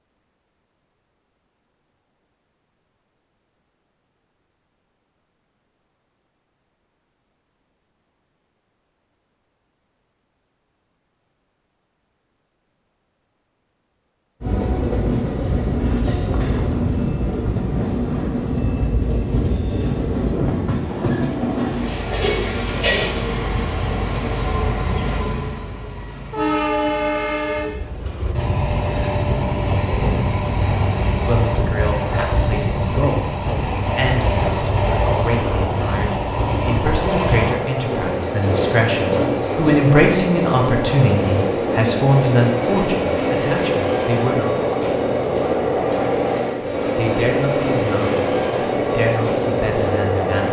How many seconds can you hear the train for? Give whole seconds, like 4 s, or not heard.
36 s.